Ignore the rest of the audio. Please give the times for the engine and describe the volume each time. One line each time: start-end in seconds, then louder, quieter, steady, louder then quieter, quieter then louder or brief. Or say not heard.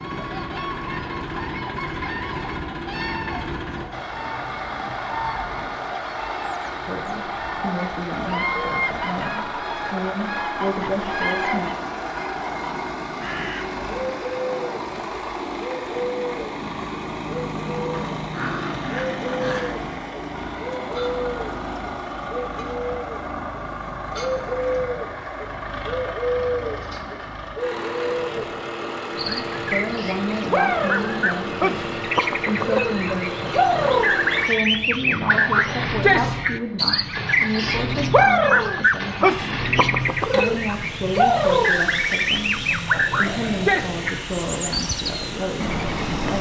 0.0-46.3 steady.